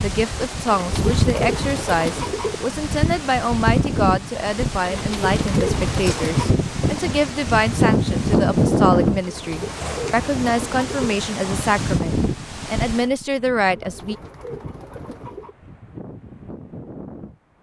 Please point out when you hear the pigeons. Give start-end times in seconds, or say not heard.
0.7-2.5, 4.8-6.5, 9.2-11.2, 13.7-15.6.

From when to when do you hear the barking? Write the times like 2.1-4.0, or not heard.
not heard.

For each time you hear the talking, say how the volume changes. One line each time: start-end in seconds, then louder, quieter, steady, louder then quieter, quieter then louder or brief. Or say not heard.
0.0-14.2 steady.